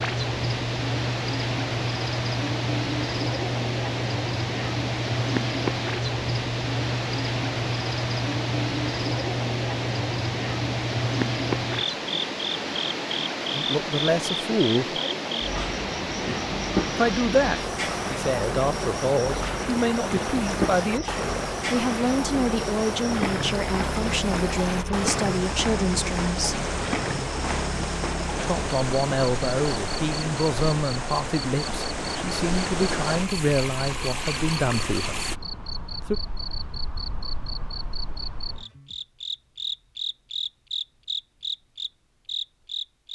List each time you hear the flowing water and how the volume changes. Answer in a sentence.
The flowing water can be heard from 0.0 to 35.4 s, at a steady volume.